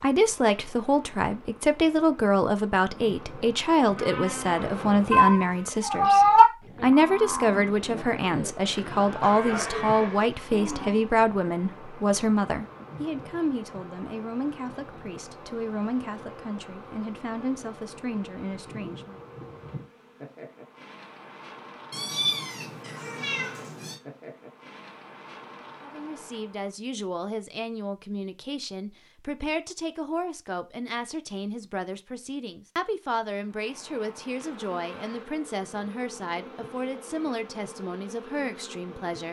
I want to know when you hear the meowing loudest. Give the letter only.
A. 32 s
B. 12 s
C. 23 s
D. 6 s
D.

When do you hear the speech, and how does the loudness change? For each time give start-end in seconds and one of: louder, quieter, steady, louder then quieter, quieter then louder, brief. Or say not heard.
0.0-19.2 quieter
25.8-39.2 steady.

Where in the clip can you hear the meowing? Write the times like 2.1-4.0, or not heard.
5.1-6.5, 21.9-24.0.